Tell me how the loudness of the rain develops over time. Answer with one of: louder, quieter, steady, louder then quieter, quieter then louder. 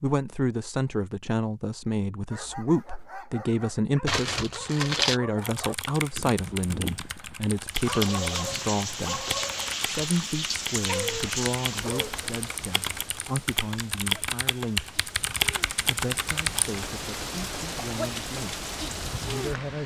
quieter then louder.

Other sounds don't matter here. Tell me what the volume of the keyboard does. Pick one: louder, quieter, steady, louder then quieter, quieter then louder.
louder.